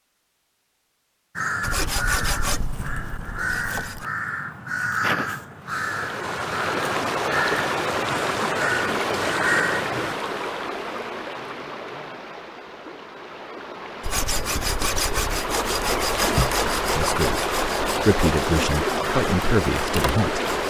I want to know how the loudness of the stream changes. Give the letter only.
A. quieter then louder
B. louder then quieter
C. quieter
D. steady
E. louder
A.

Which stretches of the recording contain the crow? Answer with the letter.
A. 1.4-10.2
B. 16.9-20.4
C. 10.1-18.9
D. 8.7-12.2
A.